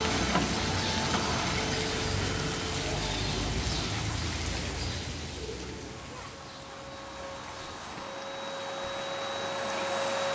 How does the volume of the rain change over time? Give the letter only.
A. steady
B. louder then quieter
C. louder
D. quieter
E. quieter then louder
D.